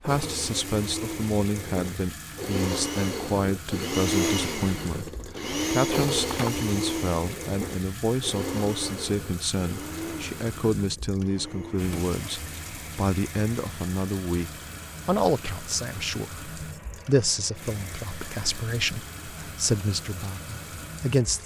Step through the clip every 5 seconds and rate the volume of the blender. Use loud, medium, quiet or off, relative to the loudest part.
loud, loud, quiet, quiet, quiet.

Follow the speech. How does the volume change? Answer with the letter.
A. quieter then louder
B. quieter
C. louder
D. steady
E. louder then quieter
D.